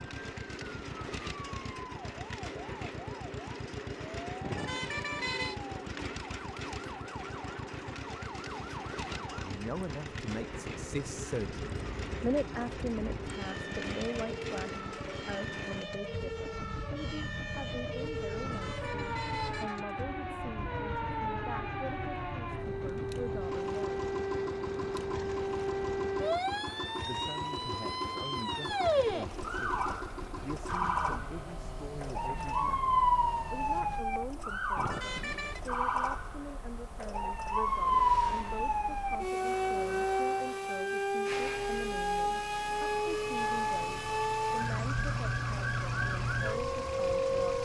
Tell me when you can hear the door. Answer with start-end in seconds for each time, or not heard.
not heard.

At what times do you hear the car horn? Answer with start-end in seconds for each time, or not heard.
4.4-5.5, 18.4-19.8, 34.8-35.6.